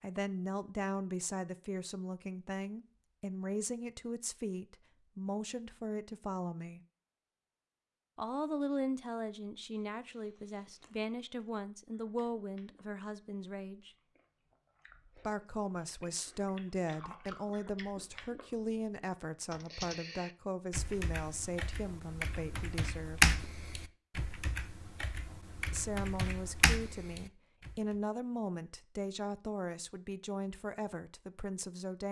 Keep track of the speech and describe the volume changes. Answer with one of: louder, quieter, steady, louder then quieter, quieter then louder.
steady.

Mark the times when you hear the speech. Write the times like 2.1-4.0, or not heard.
0.0-6.8, 8.2-13.9, 15.2-23.4, 25.7-32.0.